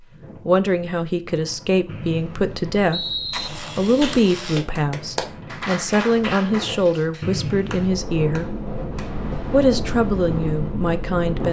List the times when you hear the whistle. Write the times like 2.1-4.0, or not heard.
1.9-3.5, 7.2-8.0.